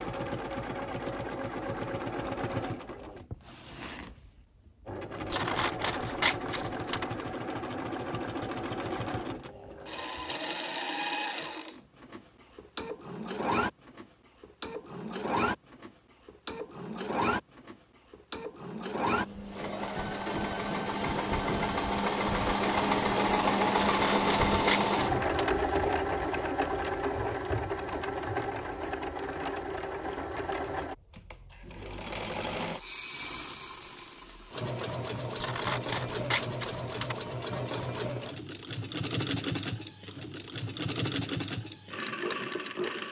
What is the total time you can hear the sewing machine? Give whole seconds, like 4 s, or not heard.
43 s.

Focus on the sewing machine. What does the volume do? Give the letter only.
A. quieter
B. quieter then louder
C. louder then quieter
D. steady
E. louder
C.